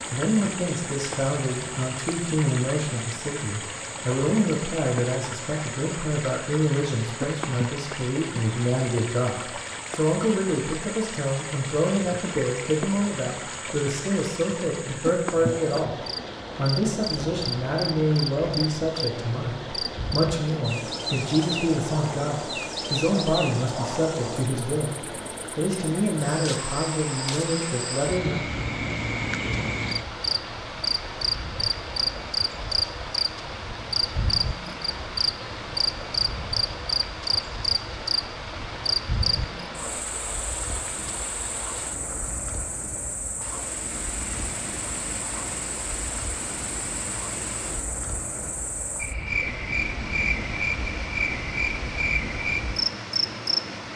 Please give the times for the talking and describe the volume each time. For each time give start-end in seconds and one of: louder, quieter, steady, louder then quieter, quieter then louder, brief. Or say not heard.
0.1-28.4 steady.